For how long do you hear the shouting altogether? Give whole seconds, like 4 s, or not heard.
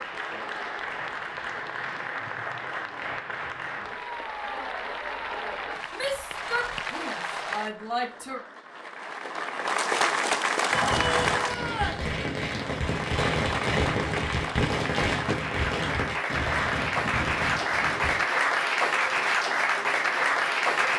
4 s.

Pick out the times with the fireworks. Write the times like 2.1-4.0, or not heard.
10.7-18.2.